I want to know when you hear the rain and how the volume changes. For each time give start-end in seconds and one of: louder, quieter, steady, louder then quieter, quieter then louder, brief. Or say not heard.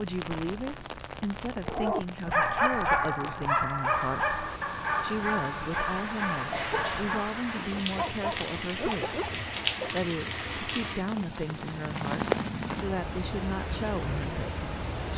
0.0-15.1 louder.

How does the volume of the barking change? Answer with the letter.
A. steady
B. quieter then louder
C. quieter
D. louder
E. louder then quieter
C.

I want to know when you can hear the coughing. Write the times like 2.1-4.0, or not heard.
6.5-7.1.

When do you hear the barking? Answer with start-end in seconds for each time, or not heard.
1.6-9.9.